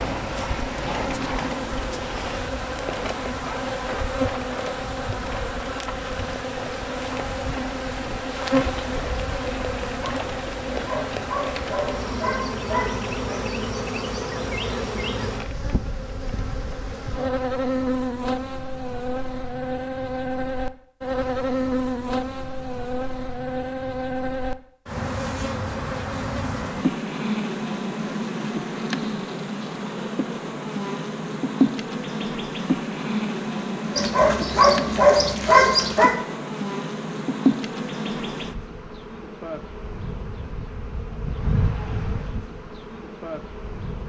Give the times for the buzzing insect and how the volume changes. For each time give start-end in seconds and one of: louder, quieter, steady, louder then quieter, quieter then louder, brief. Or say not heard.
0.0-44.0 steady.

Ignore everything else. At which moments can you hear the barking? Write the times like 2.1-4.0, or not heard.
10.7-13.6, 34.0-36.1.